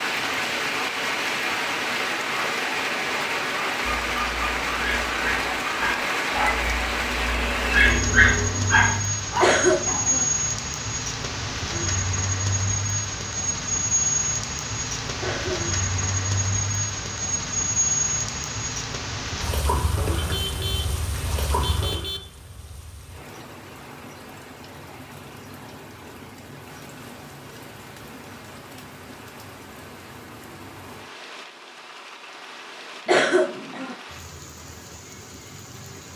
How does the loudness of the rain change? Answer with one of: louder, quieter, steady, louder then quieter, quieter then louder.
quieter.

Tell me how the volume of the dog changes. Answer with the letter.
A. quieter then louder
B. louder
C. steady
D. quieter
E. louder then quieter
B.